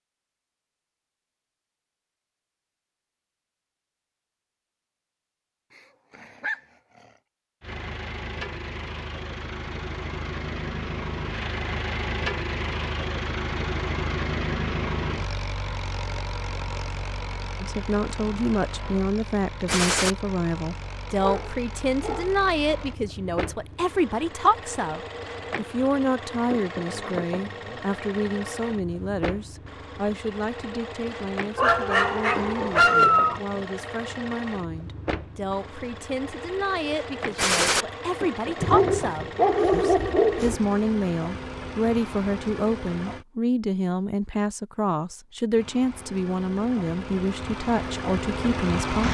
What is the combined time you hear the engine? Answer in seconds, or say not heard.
39 s.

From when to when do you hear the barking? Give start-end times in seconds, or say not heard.
5.8-7.0, 21.1-22.4, 31.6-33.4, 38.6-40.5.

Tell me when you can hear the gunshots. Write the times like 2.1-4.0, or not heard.
19.6-20.1, 37.4-37.9.